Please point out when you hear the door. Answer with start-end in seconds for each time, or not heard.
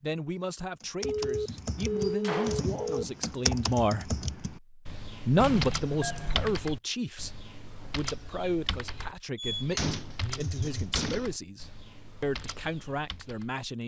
2.0-3.0, 5.3-6.6, 9.3-11.3.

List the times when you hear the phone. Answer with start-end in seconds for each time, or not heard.
1.0-3.0, 5.4-6.3, 10.2-10.8.